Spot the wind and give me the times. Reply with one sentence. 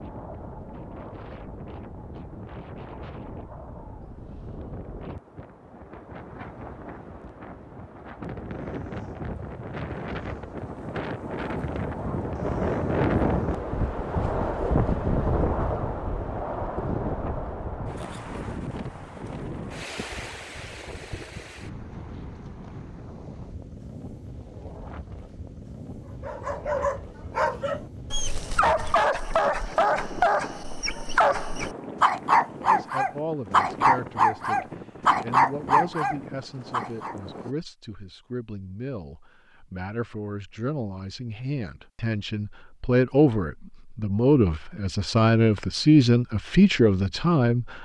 The wind can be heard from 0.0 to 37.5 s.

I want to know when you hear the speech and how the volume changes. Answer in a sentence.
You can hear the speech from 32.5 to 47.7 s, getting louder.